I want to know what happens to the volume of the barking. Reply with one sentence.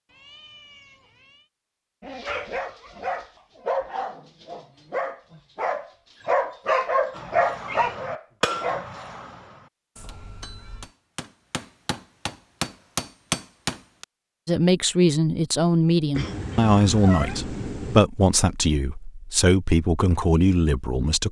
The volume of the barking goes up.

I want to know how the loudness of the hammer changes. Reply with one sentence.
The loudness of the hammer goes down, then up.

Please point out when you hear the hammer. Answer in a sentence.
You can hear the hammer from 7.1 to 14.1 s.